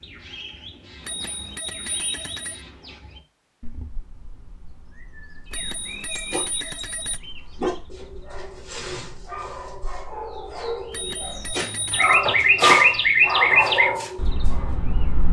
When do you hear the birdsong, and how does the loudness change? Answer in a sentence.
The birdsong can be heard from 0.0 to 15.2 s, getting quieter then louder.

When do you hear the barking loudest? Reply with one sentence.
The loudest moment of the barking is at 13 seconds.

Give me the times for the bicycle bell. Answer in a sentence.
You can hear the bicycle bell from 1.1 to 2.6 s, from 5.5 to 7.2 s and from 10.9 to 12.2 s.